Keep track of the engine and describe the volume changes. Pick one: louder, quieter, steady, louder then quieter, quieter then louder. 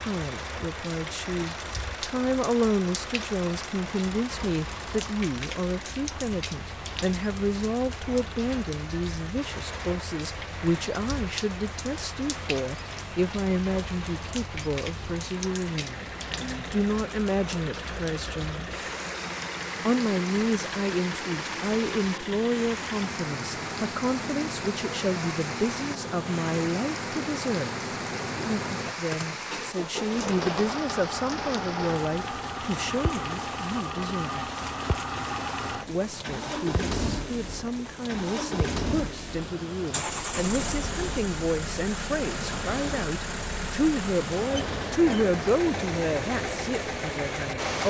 louder.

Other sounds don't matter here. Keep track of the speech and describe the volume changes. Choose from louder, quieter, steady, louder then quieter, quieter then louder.
steady.